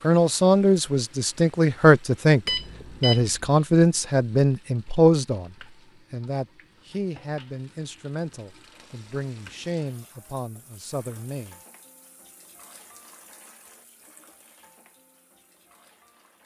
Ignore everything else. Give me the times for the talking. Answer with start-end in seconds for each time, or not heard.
0.0-11.6.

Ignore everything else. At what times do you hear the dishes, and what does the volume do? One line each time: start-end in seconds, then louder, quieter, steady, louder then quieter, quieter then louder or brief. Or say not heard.
not heard.